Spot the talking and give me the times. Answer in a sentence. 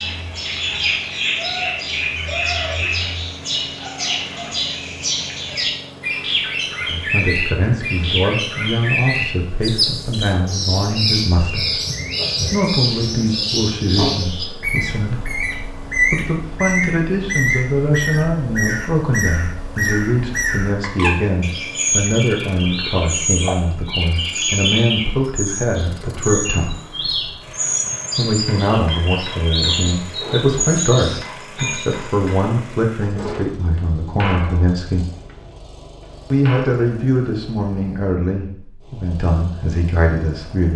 You can hear the talking from 6.8 to 11.8 s, from 12.4 to 26.8 s, from 28.1 to 35.0 s and from 36.3 to 40.7 s.